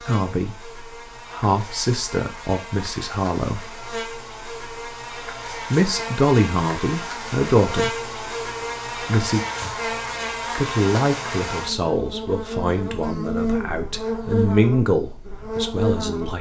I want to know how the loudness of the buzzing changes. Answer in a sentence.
The volume of the buzzing goes up.